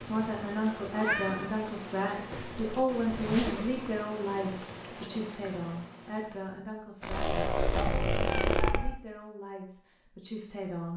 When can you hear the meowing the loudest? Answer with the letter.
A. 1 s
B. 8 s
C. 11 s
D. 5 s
A.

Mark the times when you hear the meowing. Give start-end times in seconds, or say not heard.
0.9-1.6, 7.1-9.0.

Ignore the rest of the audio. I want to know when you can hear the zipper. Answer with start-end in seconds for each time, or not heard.
2.3-3.8, 7.0-8.8.